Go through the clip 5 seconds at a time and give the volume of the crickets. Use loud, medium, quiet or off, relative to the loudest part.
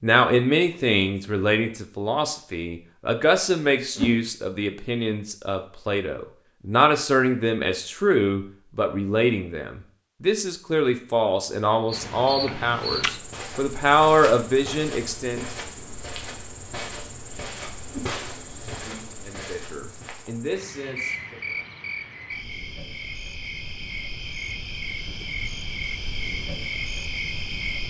off, off, loud, medium, loud, loud.